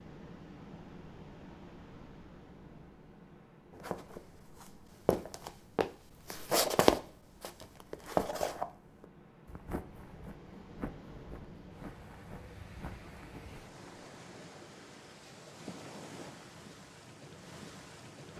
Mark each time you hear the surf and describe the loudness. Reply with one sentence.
The surf can be heard from 0.0 to 18.3 s, getting quieter then louder.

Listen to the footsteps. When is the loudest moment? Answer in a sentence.
The volume of the footsteps peaks at 7 seconds.